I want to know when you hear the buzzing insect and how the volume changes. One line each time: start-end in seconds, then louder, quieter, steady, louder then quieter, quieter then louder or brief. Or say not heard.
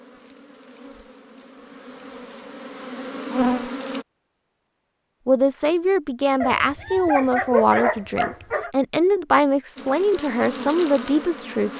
0.0-4.0 louder
9.8-11.7 brief.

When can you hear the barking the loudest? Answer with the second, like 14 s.
8 s.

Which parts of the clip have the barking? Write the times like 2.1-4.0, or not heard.
6.4-8.7.